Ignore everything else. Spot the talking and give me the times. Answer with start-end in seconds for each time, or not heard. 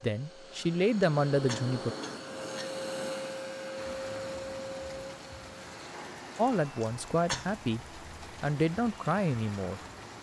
0.0-1.9, 6.3-9.8.